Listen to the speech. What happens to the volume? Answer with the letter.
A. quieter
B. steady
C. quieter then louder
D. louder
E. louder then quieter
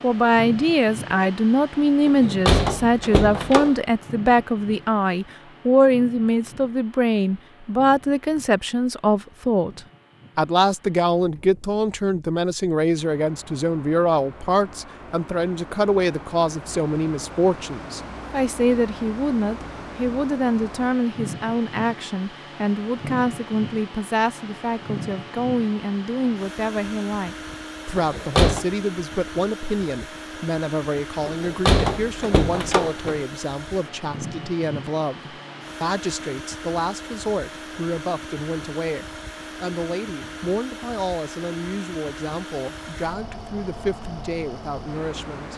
A.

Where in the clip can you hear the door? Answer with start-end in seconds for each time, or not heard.
2.0-3.8, 27.9-28.6, 31.2-33.2.